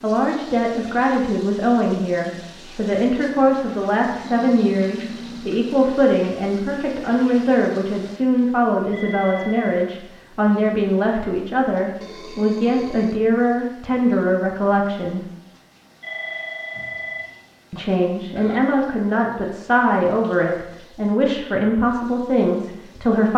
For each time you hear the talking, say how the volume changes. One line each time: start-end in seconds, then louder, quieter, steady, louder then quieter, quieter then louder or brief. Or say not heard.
0.0-15.2 steady
17.7-23.3 steady.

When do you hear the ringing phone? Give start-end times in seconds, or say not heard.
8.9-9.8, 16.0-17.8.